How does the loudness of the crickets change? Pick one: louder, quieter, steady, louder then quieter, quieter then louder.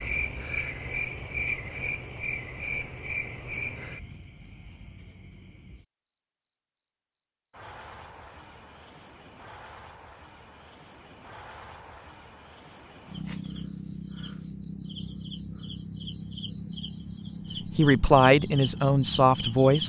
quieter then louder.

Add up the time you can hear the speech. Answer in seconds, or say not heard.
2 s.